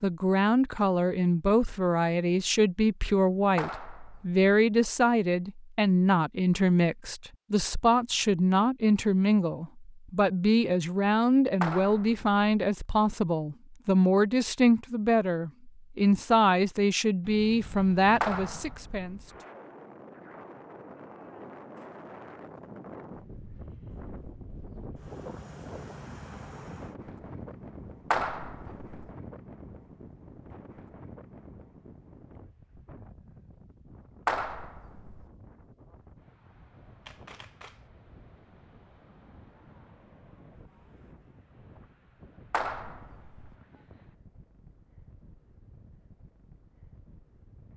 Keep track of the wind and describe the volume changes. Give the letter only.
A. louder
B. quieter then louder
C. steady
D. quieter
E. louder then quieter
D.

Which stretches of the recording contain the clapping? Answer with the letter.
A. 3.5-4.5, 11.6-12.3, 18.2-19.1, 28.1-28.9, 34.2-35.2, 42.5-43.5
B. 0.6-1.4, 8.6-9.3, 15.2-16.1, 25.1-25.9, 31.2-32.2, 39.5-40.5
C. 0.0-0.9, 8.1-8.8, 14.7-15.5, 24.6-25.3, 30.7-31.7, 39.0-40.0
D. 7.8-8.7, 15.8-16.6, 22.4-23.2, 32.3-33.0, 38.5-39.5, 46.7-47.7
A.